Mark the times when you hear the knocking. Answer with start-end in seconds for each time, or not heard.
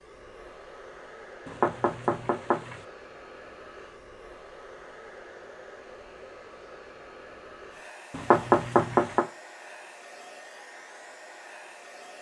1.4-2.8, 8.1-9.2.